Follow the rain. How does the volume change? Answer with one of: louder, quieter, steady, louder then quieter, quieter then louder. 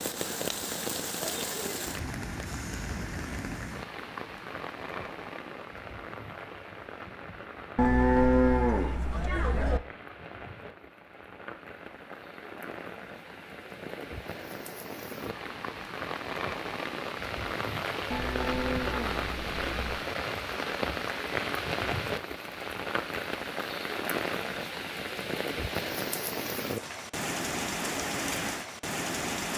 quieter then louder.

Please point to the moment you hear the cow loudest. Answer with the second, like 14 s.
8 s.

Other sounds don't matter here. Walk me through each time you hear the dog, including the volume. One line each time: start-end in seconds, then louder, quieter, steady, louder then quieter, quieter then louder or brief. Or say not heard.
not heard.